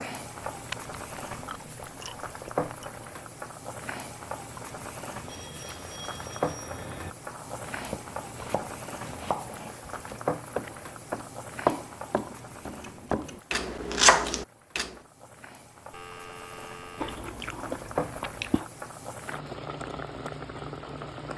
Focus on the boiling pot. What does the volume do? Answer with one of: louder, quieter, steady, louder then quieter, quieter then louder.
quieter then louder.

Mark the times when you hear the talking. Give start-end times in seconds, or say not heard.
not heard.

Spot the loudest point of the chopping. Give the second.
14 s.